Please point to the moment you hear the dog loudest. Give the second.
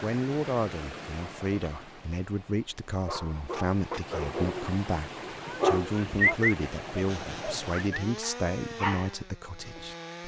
6 s.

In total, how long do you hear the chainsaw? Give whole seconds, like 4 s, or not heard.
3 s.